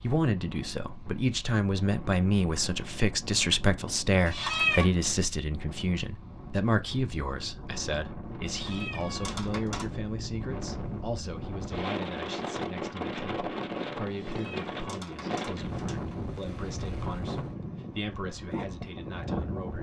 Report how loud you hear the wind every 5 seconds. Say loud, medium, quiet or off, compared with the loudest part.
medium, medium, loud, loud.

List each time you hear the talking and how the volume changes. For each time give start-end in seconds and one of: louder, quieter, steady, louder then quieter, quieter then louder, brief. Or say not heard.
0.0-19.7 quieter.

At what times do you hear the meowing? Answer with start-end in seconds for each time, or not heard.
4.2-4.8, 8.5-9.8, 14.2-16.1.